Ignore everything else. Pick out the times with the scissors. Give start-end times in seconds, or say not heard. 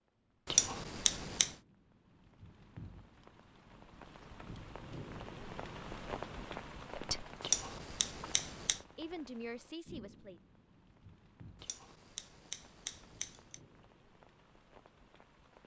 0.5-1.6, 7.4-8.8, 11.6-13.6.